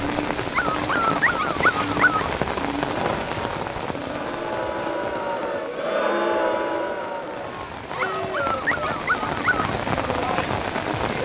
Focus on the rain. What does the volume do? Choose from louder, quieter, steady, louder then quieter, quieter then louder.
quieter then louder.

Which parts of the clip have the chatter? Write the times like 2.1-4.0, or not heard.
2.9-11.2.